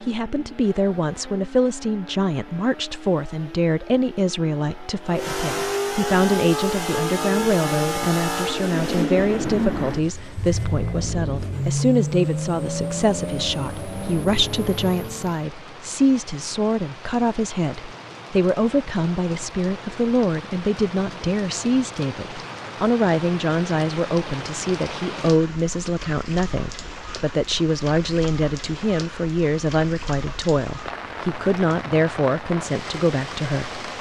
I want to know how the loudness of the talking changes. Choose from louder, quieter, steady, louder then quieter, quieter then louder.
steady.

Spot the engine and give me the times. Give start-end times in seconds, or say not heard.
0.0-15.4.